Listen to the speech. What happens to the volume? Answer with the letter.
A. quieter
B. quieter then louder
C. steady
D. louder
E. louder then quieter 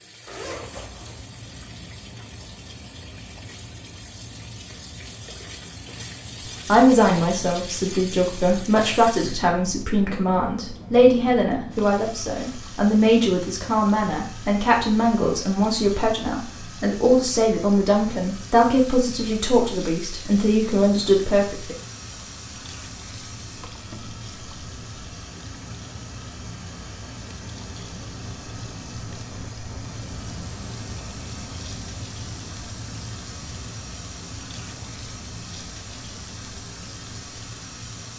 C.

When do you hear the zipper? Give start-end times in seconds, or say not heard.
0.2-1.2.